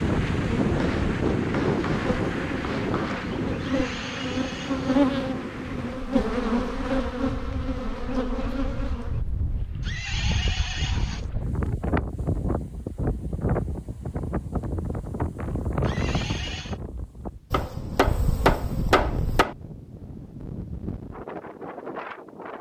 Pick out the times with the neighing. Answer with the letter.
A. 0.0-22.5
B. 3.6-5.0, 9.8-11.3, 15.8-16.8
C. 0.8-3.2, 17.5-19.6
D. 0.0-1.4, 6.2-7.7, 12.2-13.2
B.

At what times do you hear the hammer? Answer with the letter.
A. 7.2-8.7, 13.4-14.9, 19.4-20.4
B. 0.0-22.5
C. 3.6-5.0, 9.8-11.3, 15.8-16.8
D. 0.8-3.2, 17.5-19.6
D.